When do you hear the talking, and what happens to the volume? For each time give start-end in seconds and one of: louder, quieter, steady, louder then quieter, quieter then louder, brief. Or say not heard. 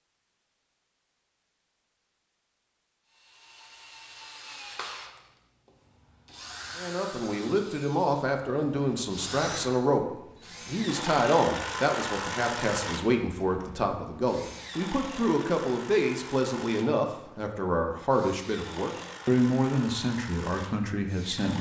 6.8-21.5 steady.